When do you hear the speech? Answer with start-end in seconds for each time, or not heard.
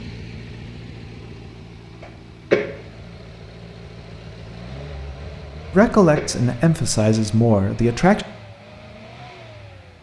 5.7-8.2.